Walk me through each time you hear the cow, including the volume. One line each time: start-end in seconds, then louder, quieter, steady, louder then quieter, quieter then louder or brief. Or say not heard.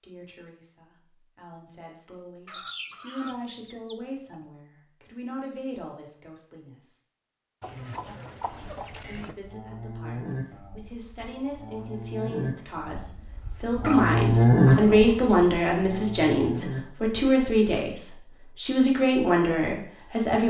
8.1-16.8 louder then quieter.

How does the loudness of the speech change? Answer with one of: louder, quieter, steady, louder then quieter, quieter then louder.
louder.